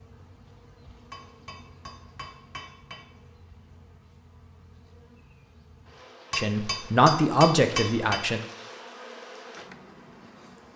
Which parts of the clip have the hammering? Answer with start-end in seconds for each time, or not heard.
1.1-3.1, 6.3-8.3.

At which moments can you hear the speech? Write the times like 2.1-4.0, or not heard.
6.3-8.4.